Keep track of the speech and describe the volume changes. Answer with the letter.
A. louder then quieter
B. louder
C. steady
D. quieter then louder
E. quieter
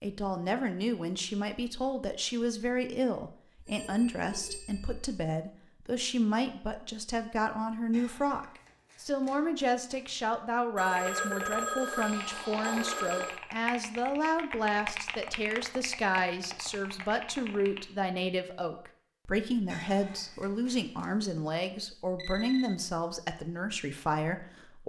C.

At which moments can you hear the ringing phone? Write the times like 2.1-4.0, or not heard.
3.5-5.2, 10.8-13.4, 22.1-22.8.